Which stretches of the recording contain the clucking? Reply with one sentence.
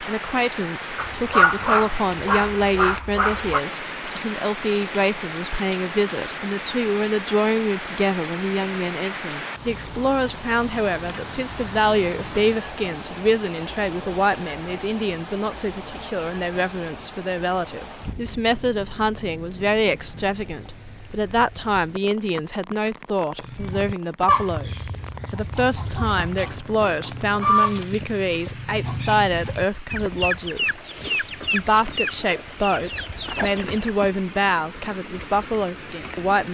The clucking can be heard from 23.4 to 33.9 s.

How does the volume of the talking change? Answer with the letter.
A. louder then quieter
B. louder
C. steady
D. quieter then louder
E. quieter
C.